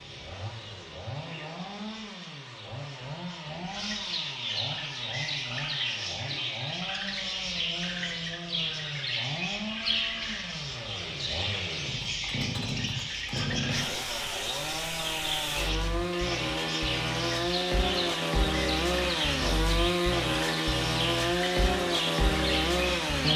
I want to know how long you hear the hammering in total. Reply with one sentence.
You can't hear the hammering here.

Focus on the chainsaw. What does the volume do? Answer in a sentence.
The volume of the chainsaw goes up.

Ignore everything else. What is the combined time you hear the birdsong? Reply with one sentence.
The birdsong can be heard for 23 seconds in total.